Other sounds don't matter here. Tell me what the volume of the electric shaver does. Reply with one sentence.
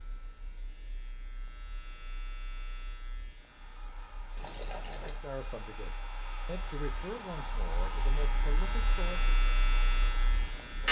The volume of the electric shaver goes up.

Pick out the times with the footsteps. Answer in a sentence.
You can't hear the footsteps here.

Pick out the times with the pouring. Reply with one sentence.
You can hear the pouring from 4.3 to 5.2 s.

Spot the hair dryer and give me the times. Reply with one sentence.
You can hear the hair dryer from 3.3 to 10.7 s.